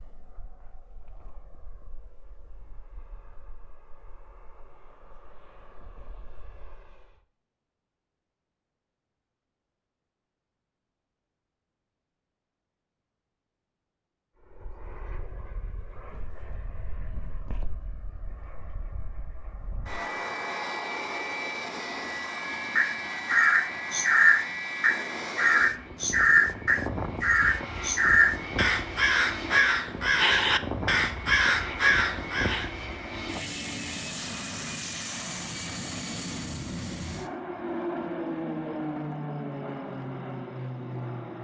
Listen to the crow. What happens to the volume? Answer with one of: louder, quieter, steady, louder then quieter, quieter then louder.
steady.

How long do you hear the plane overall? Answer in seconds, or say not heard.
34 s.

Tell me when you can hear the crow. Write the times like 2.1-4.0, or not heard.
22.8-32.7.